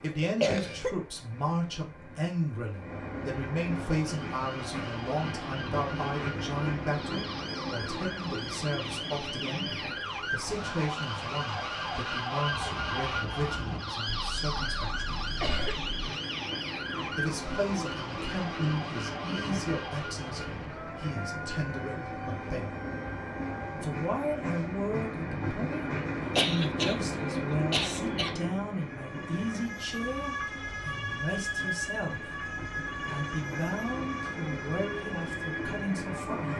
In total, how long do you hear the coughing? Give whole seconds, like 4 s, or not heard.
5 s.